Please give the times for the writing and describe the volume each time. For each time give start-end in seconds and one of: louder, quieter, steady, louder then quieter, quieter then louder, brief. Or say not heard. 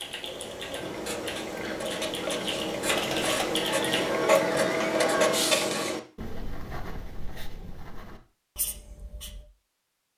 0.8-9.4 louder then quieter.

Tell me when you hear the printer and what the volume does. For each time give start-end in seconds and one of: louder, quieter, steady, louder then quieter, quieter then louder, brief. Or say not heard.
0.0-5.6 louder.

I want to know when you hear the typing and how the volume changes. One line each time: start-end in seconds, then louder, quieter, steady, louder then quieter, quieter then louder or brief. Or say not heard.
0.0-4.2 louder.